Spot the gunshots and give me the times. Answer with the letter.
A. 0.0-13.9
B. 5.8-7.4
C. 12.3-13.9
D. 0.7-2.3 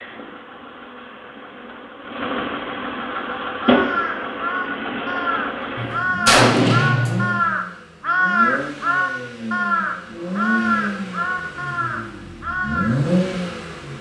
B.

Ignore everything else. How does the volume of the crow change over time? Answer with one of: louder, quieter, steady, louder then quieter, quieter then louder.
louder then quieter.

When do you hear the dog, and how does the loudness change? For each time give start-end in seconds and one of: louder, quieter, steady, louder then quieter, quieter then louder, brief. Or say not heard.
not heard.